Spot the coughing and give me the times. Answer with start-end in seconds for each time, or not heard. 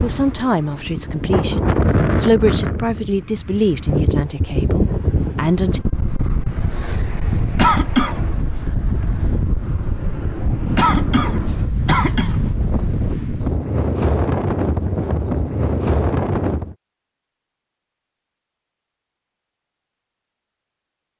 7.5-8.2, 10.8-12.4.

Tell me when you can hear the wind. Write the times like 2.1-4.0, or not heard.
0.0-16.8.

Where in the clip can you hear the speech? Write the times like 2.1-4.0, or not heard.
0.0-5.8.